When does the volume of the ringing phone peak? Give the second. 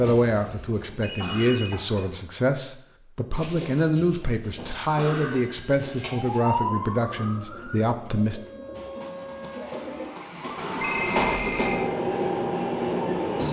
11 s.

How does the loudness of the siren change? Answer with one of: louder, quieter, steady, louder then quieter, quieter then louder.
quieter.